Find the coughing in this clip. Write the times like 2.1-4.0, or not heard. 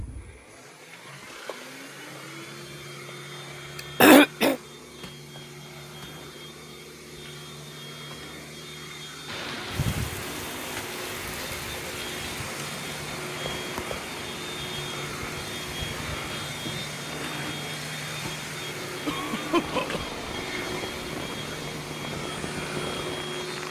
4.0-4.5, 19.1-20.1.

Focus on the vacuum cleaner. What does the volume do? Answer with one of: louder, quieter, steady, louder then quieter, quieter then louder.
louder.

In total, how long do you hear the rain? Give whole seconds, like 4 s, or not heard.
14 s.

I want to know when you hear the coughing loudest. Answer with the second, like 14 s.
4 s.